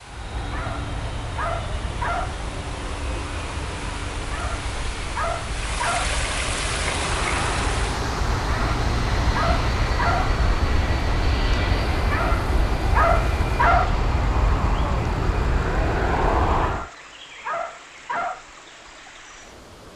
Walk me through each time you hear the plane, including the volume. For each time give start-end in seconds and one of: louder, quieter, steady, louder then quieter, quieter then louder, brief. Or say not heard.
0.0-16.9 louder.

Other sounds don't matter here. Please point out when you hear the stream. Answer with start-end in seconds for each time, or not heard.
0.0-19.9.